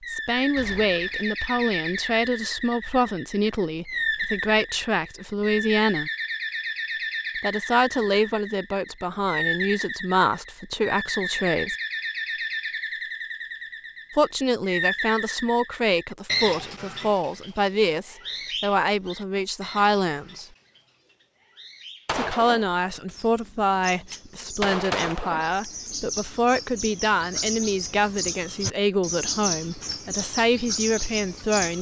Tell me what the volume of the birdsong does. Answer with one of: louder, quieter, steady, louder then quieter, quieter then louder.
quieter then louder.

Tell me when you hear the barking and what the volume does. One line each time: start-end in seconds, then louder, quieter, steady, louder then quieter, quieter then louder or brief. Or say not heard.
not heard.